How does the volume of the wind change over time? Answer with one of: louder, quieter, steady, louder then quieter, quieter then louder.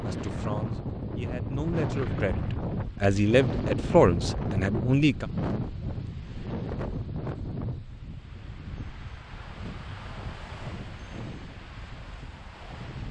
quieter.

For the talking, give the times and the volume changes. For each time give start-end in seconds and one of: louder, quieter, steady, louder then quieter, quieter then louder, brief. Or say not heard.
0.0-5.2 louder.